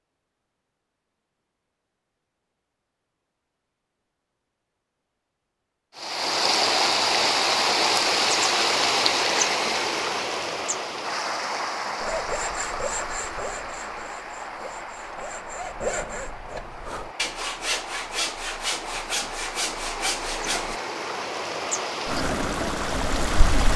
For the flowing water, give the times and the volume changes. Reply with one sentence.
You can hear the flowing water from 6.0 to 23.7 s, getting quieter then louder.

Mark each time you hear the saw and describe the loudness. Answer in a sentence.
You can hear the saw from 12.0 to 20.8 s, getting quieter then louder.